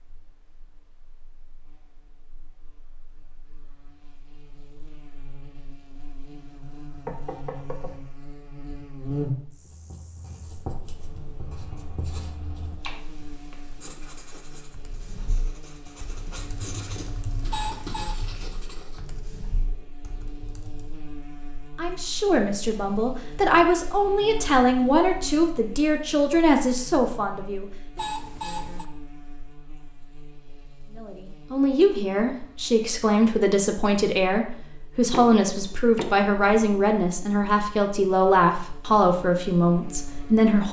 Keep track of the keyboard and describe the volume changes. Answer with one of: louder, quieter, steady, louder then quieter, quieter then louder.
louder then quieter.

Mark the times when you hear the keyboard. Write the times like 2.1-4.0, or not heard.
14.7-20.9.